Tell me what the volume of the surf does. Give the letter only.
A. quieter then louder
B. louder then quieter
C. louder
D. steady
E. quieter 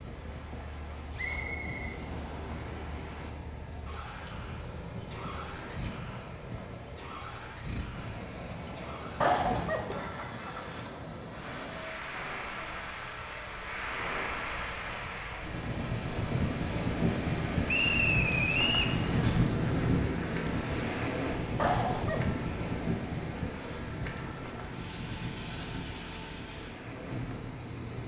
B.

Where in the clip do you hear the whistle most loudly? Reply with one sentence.
The loudest moment of the whistle is at 18 seconds.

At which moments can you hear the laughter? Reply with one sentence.
The laughter can be heard from 9.2 to 10.1 s and from 21.6 to 22.4 s.